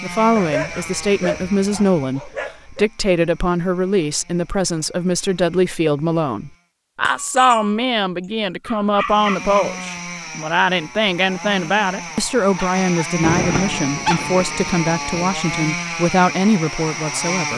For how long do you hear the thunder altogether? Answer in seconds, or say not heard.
2 s.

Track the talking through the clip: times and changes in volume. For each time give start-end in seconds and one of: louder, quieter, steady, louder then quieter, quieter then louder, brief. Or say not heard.
0.0-17.5 steady.